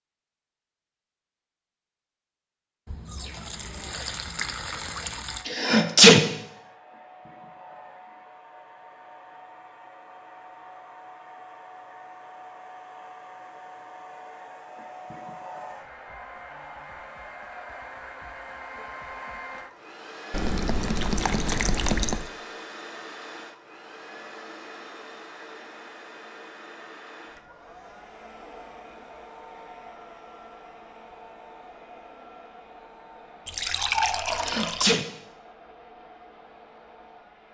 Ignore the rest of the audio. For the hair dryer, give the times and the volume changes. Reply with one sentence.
You can hear the hair dryer from 5.2 to 37.4 s, getting louder then quieter.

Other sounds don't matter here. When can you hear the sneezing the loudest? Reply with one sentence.
The loudest moment of the sneezing is at 6 seconds.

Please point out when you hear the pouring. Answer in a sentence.
You can hear the pouring from 2.9 to 5.5 s, from 20.3 to 22.3 s and from 33.5 to 35.0 s.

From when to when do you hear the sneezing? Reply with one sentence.
You can hear the sneezing from 5.5 to 6.2 s and from 34.2 to 35.0 s.